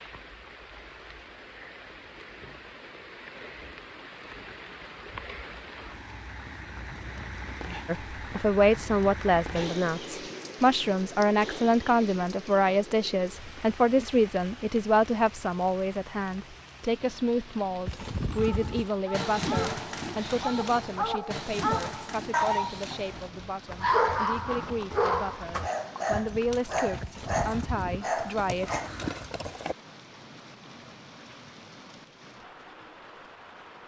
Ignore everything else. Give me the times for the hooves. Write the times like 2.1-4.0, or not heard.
17.9-29.8.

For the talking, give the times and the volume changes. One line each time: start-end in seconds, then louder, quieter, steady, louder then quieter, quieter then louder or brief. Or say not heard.
7.8-28.8 quieter.